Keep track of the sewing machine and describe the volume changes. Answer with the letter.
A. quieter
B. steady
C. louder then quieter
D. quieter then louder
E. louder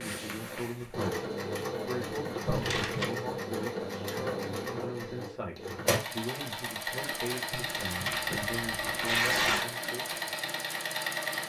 B.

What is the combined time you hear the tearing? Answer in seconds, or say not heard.
3 s.